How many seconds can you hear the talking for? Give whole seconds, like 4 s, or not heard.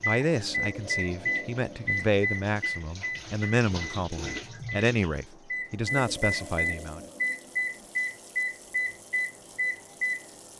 7 s.